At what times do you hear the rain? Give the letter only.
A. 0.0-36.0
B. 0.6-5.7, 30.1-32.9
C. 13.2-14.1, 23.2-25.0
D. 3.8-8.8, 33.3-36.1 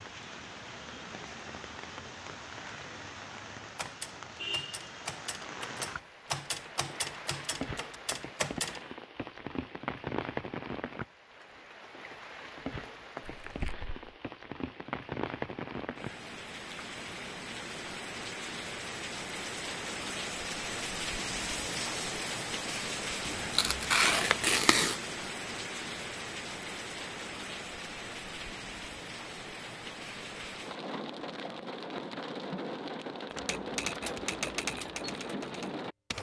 A.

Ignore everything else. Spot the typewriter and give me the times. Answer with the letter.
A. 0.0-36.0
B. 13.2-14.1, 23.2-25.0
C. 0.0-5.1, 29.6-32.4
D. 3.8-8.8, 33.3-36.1
D.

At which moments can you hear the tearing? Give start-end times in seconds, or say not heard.
13.2-14.1, 23.2-25.0.